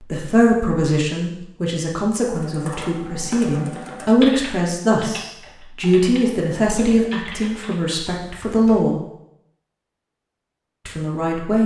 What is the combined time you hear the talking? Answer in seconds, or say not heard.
10 s.